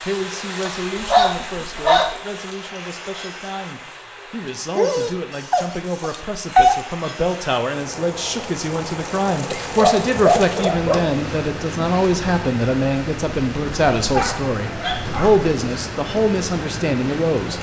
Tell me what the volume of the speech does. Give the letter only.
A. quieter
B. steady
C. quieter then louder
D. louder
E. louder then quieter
D.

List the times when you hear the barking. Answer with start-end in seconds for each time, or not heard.
0.7-2.1, 4.8-6.8, 9.5-11.1, 14.1-15.4.